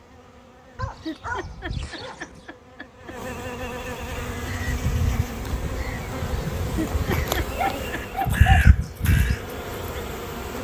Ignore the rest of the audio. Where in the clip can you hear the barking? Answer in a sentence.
You can hear the barking from 0.8 to 2.5 s and from 7.4 to 8.7 s.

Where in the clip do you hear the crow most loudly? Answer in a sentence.
The volume of the crow peaks at 9 seconds.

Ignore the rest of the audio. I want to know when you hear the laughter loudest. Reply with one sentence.
The loudest moment of the laughter is at 7 seconds.